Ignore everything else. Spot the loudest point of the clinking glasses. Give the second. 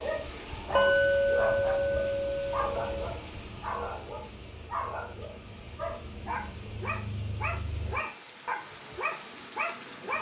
1 s.